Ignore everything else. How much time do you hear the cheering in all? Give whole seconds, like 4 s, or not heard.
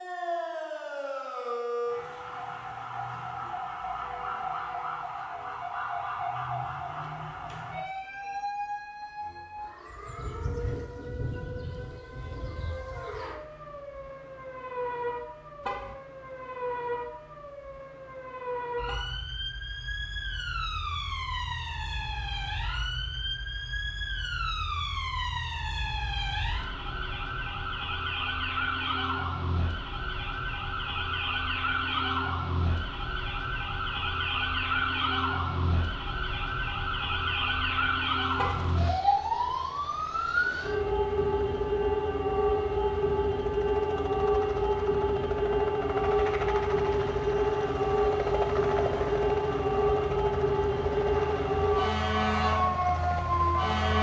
not heard.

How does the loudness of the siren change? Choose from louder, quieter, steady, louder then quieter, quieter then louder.
louder.